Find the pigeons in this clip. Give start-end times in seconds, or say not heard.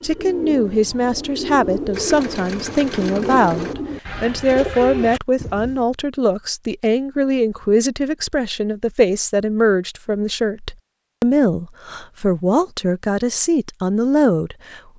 0.0-5.9.